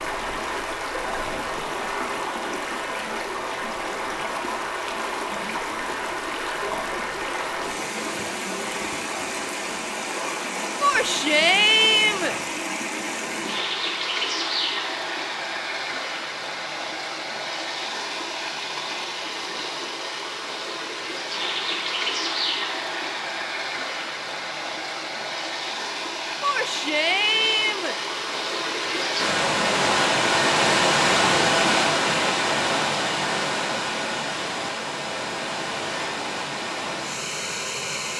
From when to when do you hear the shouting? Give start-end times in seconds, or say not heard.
10.8-12.3, 26.4-27.9.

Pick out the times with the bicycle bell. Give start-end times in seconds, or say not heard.
not heard.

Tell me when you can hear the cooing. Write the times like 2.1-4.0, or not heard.
not heard.